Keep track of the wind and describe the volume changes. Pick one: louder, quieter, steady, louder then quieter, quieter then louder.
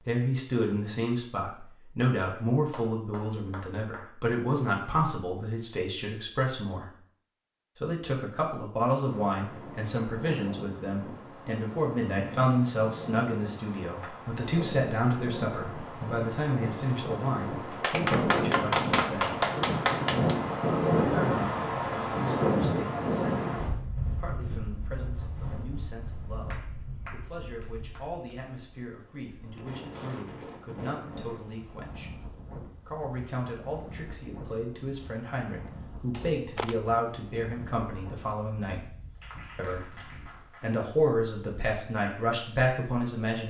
louder then quieter.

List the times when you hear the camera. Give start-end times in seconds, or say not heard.
36.1-36.8.